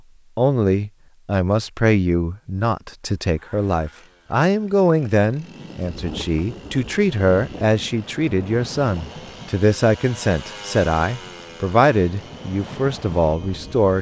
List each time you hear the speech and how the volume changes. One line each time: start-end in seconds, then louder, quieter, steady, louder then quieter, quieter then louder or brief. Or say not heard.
0.3-13.9 steady.